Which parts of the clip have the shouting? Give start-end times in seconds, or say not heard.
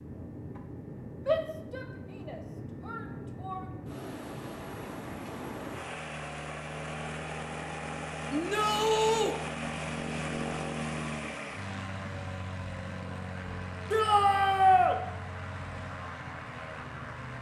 1.2-3.6, 8.3-9.3, 13.9-14.9.